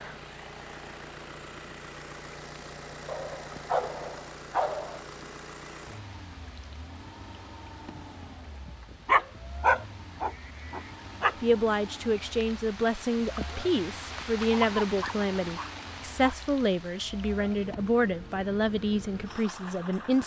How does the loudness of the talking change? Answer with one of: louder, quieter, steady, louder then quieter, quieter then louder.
steady.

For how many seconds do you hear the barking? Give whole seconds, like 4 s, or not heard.
6 s.